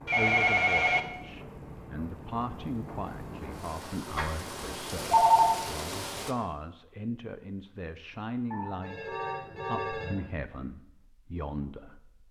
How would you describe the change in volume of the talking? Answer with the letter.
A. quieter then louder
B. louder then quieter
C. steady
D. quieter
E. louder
C.